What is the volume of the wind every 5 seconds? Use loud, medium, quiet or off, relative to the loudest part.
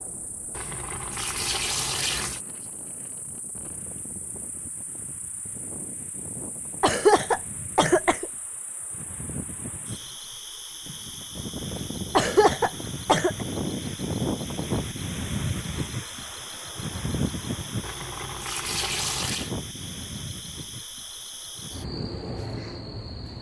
quiet, medium, loud, loud, medium.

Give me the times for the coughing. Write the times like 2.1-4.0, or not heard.
6.8-8.2, 12.2-13.4.